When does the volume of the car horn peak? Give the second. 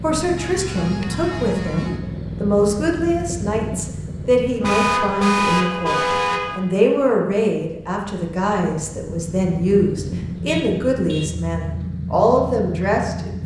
5 s.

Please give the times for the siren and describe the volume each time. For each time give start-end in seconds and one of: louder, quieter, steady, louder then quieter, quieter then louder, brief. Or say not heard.
not heard.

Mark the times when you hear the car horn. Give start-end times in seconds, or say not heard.
0.3-2.0, 4.6-6.6, 10.4-11.3.